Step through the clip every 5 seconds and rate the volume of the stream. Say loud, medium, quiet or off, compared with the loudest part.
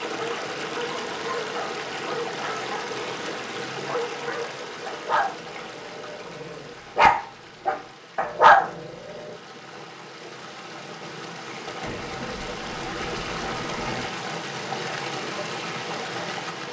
loud, medium, loud, loud.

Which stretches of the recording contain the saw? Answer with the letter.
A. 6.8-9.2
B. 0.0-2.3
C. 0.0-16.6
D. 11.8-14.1
D.